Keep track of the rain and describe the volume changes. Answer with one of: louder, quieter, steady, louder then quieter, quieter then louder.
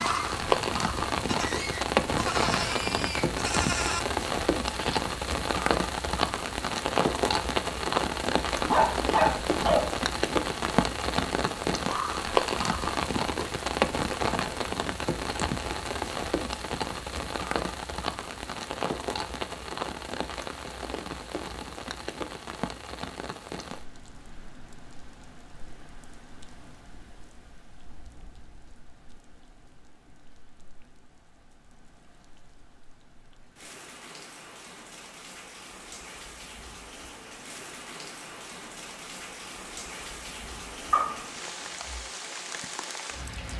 quieter then louder.